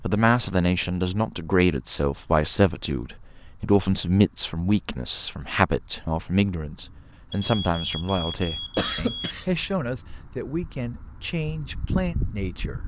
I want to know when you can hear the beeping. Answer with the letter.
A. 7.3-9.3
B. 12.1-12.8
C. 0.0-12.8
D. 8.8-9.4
A.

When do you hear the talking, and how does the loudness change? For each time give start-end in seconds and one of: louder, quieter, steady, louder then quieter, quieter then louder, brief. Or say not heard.
0.0-12.8 quieter.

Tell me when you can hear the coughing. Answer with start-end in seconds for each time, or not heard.
8.8-9.4.